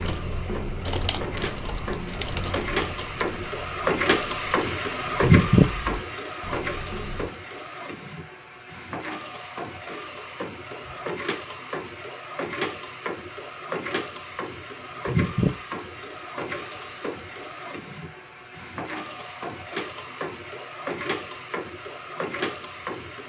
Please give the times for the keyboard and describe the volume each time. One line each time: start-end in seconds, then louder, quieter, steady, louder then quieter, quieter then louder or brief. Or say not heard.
0.0-7.3 quieter.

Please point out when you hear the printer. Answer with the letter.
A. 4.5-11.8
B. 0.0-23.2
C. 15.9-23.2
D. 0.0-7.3
B.